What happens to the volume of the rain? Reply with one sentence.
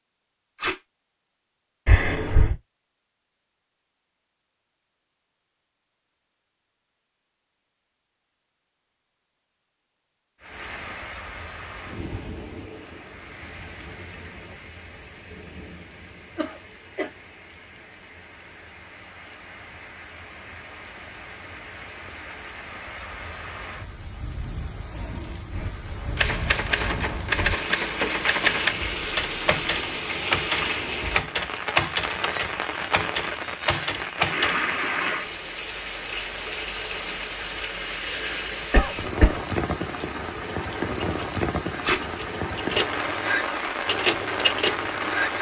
The loudness of the rain goes up.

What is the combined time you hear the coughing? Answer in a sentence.
The coughing can be heard for 2 seconds in total.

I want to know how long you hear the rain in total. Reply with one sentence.
You can hear the rain for 35 seconds altogether.